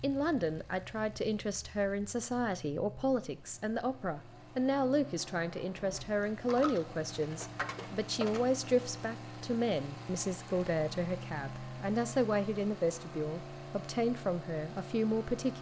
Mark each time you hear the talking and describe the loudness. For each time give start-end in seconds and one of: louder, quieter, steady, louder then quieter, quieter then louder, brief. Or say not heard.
0.0-15.5 steady.